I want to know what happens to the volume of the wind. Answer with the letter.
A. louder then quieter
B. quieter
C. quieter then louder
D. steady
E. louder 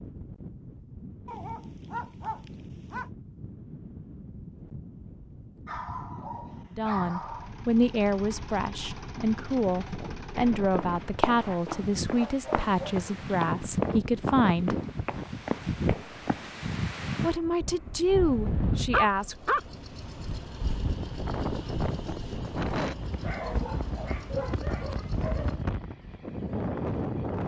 E.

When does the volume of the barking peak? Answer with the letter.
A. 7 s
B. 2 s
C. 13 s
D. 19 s
D.